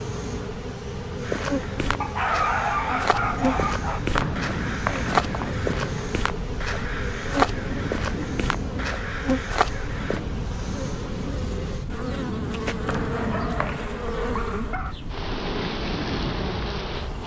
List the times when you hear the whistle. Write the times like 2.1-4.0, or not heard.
4.1-5.5, 12.8-14.1.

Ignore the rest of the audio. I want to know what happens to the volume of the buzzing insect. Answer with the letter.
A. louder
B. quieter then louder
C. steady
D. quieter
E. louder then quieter
C.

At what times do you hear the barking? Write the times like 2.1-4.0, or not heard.
2.0-4.0, 13.1-14.9.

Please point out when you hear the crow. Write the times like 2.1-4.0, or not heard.
1.2-10.2.